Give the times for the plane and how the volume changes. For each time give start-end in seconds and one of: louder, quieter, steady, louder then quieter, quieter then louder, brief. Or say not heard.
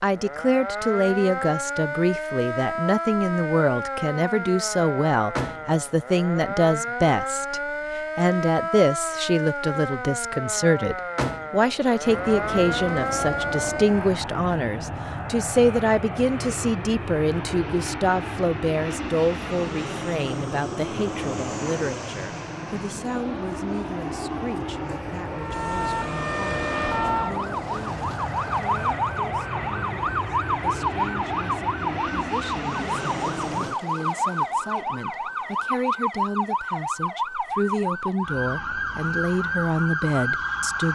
12.0-33.8 steady.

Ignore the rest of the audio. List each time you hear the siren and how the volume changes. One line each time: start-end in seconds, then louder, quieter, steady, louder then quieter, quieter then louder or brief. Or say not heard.
0.1-14.2 steady
25.3-40.8 steady.